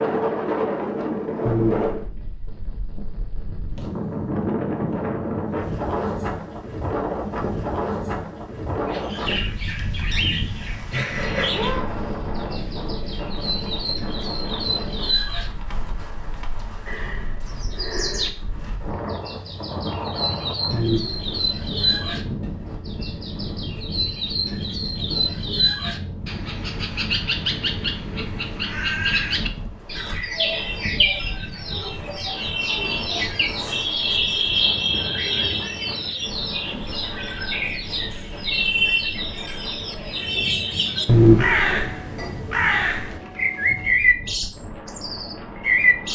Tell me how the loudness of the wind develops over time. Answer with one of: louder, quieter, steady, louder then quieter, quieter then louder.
quieter.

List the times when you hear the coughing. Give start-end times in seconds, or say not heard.
1.4-2.0, 20.7-21.5, 41.0-41.9.